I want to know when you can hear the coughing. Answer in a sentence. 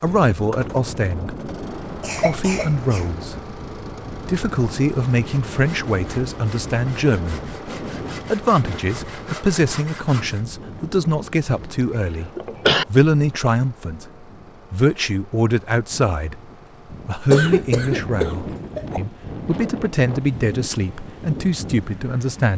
You can hear the coughing from 2.0 to 3.1 s, from 11.4 to 12.8 s and from 17.3 to 19.0 s.